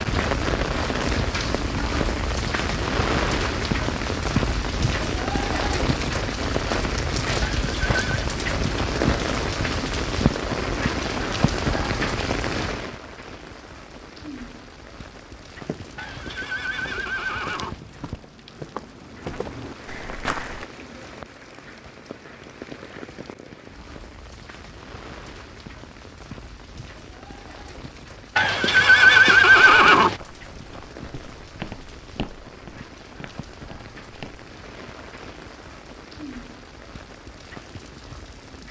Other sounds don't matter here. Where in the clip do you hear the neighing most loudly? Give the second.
29 s.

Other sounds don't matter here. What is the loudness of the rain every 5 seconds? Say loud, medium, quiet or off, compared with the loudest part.
loud, loud, loud, quiet, quiet, quiet, quiet, quiet.